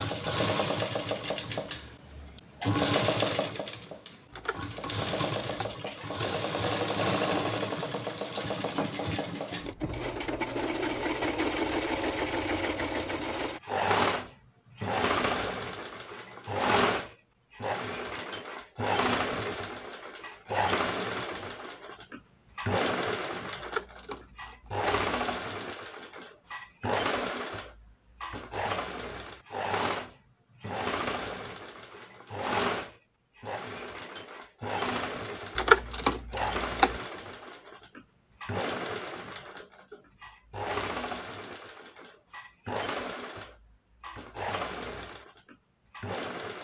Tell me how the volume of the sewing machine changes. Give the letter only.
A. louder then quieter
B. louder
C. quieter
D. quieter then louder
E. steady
C.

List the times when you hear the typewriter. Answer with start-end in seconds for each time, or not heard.
4.3-5.8, 23.6-24.9, 35.5-37.0.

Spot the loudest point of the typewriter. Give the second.
36 s.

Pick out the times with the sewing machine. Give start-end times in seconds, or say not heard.
0.0-46.6.